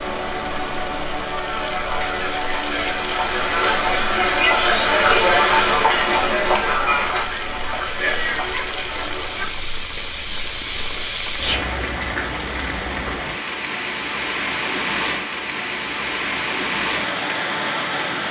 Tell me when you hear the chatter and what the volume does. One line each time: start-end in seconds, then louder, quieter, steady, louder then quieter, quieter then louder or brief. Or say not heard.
0.0-9.5 louder then quieter.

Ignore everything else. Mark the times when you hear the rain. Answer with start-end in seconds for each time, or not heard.
0.0-18.2.